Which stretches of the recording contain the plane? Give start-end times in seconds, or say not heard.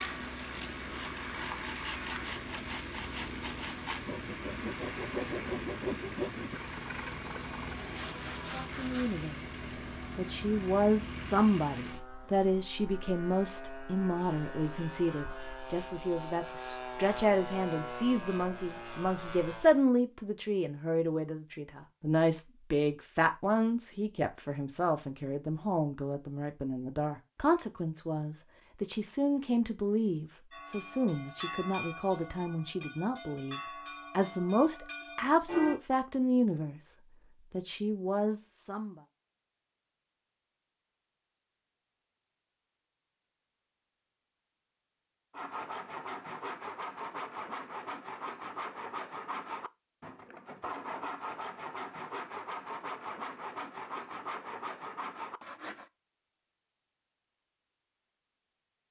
0.0-19.9.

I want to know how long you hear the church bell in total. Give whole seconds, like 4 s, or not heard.
5 s.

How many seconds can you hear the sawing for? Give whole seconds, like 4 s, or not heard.
20 s.